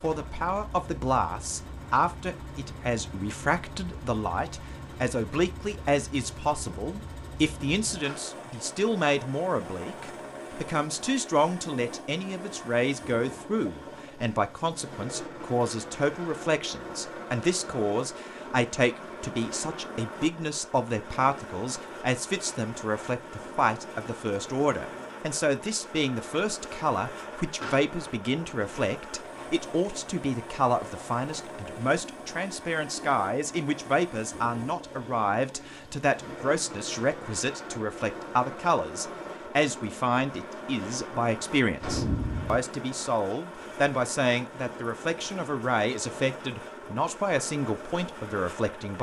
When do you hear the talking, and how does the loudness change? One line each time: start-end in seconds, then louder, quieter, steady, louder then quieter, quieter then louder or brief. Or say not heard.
0.0-48.9 steady.